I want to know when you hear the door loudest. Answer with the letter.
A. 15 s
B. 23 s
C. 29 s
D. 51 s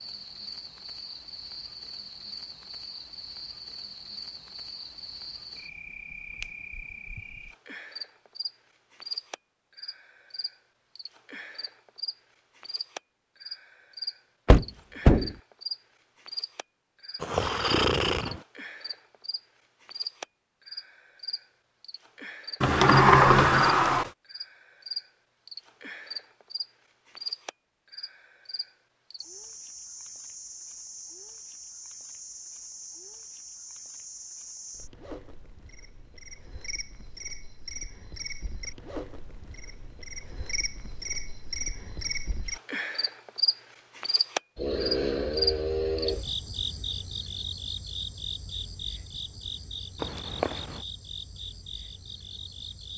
B.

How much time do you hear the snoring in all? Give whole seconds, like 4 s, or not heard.
3 s.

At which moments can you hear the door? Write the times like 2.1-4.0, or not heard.
14.4-15.3, 22.6-24.1, 50.0-50.8.